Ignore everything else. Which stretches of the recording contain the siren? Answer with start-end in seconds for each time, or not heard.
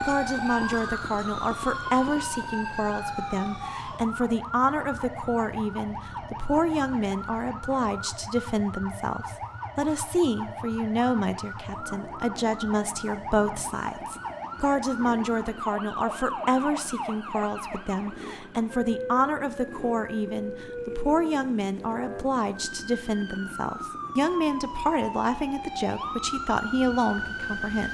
0.0-27.9.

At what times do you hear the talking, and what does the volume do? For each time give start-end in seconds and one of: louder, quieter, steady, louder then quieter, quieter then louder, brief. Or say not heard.
0.1-27.9 steady.